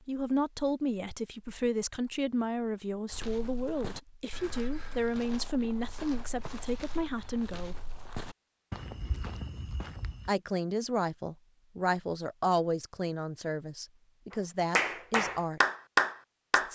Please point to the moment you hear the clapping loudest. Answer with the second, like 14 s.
16 s.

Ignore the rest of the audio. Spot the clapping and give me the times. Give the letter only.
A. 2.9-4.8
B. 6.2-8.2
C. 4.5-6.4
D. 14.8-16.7
D.